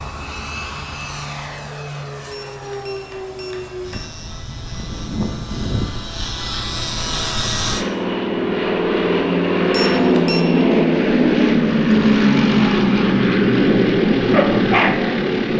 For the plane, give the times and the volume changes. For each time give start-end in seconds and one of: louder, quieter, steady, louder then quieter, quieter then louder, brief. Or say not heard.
0.0-15.5 louder.